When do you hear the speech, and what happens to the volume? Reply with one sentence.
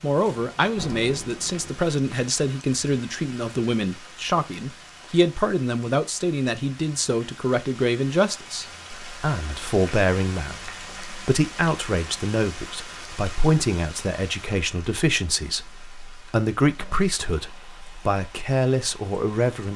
The speech can be heard from 0.0 to 19.7 s, at a steady volume.